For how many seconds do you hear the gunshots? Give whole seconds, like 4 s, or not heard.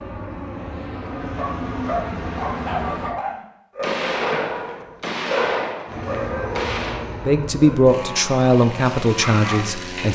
3 s.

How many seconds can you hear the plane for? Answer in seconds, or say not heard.
7 s.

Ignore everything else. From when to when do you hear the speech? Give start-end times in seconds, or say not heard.
7.2-10.0.